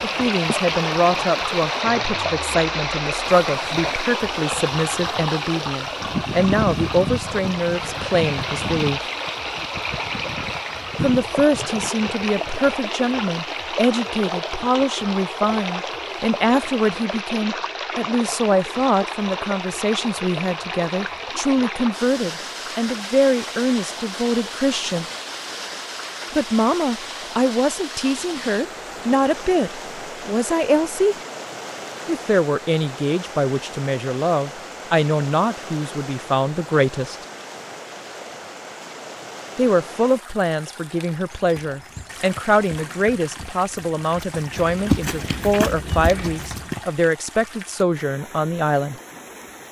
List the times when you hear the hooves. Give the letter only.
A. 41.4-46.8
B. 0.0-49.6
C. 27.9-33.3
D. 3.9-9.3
A.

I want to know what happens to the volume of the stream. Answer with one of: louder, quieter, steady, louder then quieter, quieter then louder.
quieter.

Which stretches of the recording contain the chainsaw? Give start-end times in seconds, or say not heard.
not heard.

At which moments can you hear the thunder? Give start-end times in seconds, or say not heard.
not heard.